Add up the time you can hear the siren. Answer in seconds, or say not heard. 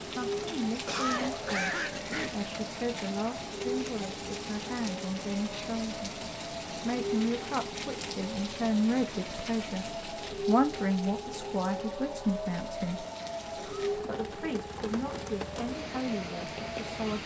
17 s.